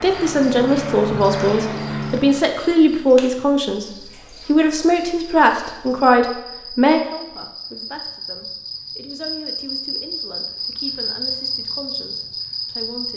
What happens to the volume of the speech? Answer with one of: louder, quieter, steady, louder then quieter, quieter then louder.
quieter.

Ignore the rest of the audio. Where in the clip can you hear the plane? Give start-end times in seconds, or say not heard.
0.0-2.5.